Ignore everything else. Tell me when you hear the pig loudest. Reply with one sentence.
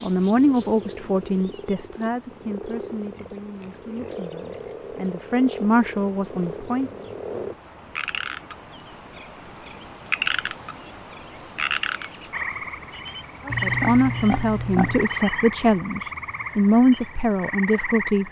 The volume of the pig peaks at 14 seconds.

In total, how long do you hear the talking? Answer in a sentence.
The talking can be heard for 12 seconds in total.